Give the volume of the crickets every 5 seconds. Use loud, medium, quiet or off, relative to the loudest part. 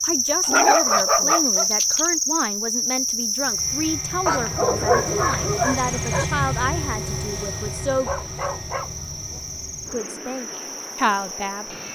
loud, medium, quiet.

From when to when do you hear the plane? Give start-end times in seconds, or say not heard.
3.4-11.9.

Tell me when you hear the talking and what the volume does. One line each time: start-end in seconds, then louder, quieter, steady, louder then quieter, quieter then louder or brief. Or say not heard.
0.0-8.1 steady
9.9-11.8 brief.